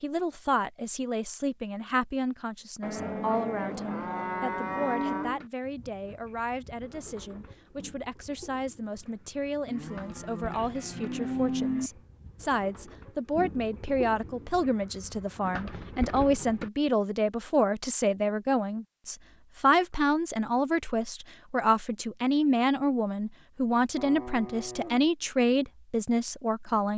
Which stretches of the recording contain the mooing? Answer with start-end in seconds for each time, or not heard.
2.8-5.4, 9.7-11.9, 23.9-25.1.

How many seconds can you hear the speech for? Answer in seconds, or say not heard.
27 s.